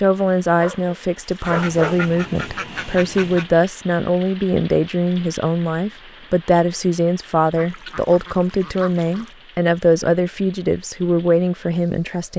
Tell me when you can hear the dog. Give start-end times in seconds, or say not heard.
0.5-2.1.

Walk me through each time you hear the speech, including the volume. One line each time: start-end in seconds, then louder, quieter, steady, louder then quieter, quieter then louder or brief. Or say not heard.
0.0-12.3 steady.